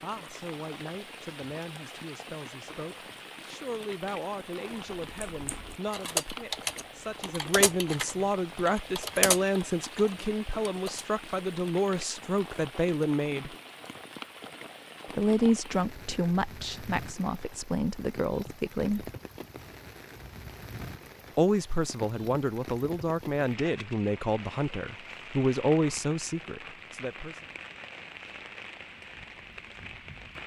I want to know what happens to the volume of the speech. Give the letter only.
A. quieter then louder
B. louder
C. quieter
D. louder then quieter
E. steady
B.